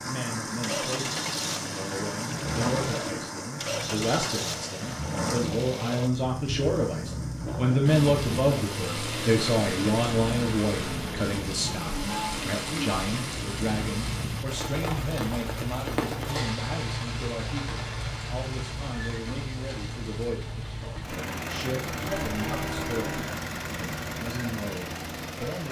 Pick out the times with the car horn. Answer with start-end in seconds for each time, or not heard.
22.0-23.2.